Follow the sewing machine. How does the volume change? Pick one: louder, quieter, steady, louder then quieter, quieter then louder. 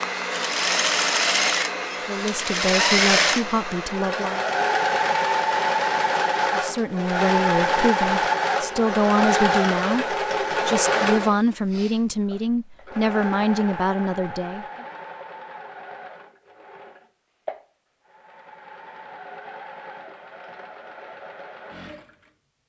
quieter.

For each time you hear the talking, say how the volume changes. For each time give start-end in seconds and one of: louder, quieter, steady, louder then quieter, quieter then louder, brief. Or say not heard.
2.0-4.5 brief
6.5-14.8 steady.